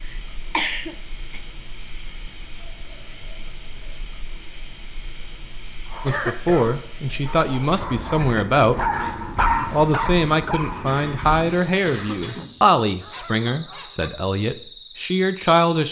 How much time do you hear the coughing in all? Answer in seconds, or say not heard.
4 s.